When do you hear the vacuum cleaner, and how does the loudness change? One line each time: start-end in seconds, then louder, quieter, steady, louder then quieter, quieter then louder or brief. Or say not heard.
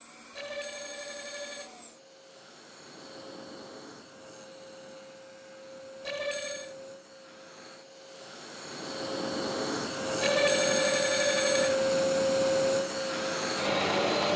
0.0-14.3 louder.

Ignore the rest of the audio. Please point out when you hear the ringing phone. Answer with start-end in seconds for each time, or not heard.
0.3-1.7, 6.0-6.8, 10.2-11.8.